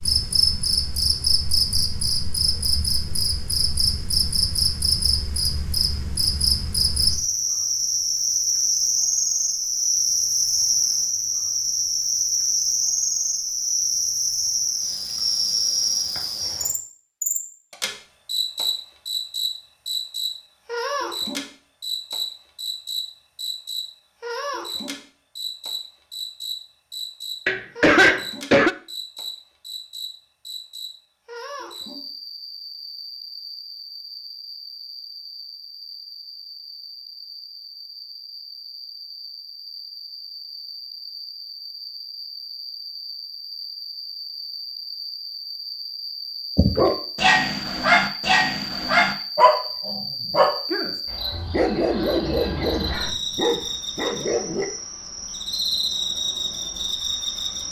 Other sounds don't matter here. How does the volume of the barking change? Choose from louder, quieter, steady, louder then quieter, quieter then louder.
quieter.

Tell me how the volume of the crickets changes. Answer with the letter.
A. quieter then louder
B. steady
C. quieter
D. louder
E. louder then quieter
A.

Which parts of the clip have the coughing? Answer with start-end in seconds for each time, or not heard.
27.4-28.8.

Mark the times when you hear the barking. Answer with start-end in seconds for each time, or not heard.
46.5-54.6.